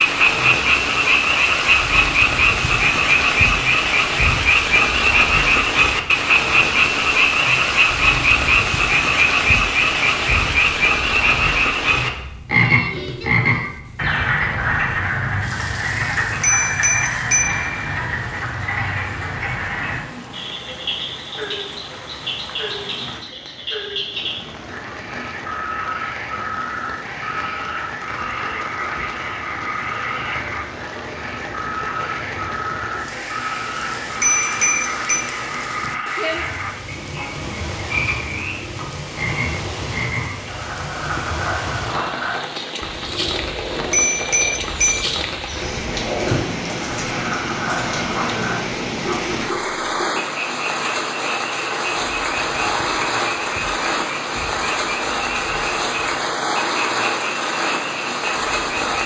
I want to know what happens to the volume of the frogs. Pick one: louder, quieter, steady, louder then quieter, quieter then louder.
quieter.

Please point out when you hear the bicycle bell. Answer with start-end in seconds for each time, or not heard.
16.4-17.8, 34.2-35.3, 43.9-45.0.